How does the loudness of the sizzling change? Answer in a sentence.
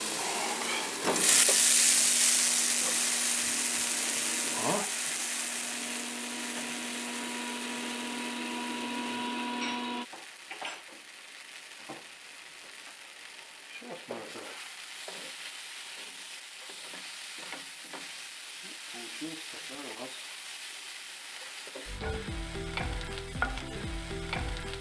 The loudness of the sizzling goes down, then up.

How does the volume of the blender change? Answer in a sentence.
The volume of the blender goes up.